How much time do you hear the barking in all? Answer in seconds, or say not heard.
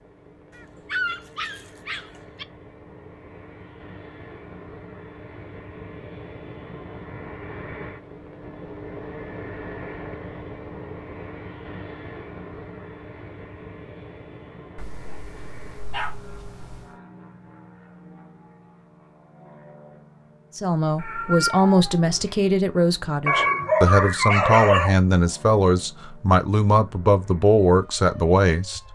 6 s.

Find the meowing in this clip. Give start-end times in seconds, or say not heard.
20.9-22.4.